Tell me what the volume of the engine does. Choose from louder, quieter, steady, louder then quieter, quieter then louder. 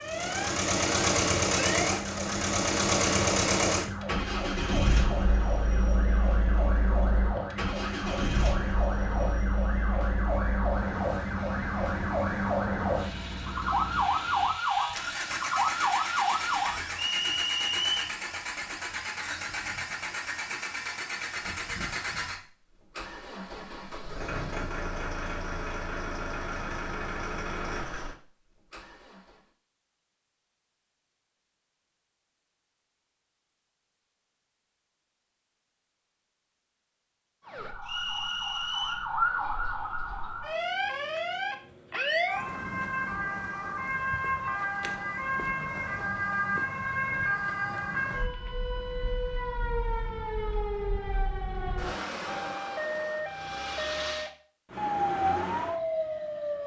quieter.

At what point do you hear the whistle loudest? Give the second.
18 s.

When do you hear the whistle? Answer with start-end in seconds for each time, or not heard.
16.9-18.2, 37.9-39.0.